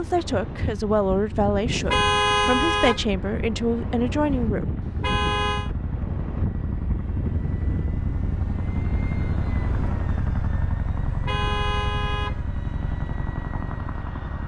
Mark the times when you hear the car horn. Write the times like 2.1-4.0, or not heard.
1.7-3.0, 4.8-5.7, 11.1-12.4.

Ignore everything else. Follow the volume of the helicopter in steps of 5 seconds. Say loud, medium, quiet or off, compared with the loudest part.
medium, loud, loud.